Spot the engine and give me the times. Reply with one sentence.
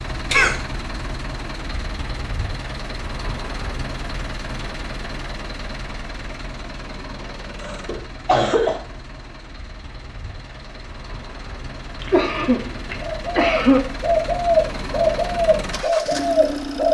You can hear the engine from 0.0 to 16.8 s.